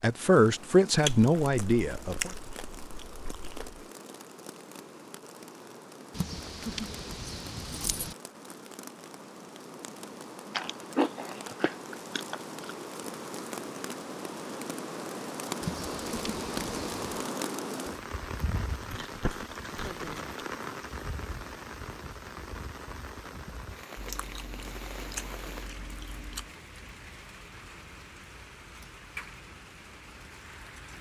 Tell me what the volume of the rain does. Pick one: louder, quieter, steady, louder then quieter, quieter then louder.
louder then quieter.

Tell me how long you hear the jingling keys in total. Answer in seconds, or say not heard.
4 s.